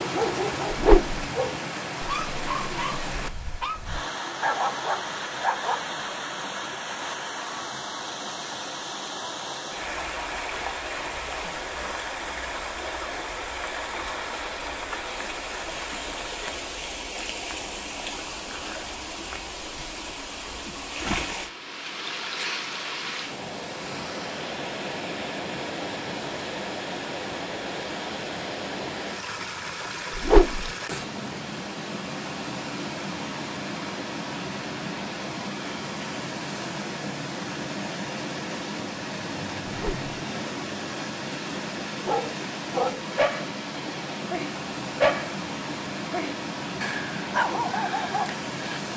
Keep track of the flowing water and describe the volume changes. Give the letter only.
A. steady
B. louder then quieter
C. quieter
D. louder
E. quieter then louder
A.